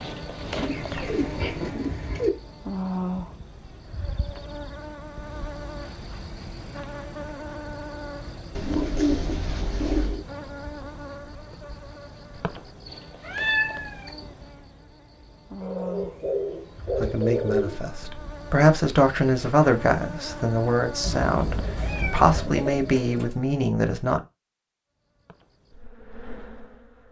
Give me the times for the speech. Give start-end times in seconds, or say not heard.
17.0-24.2.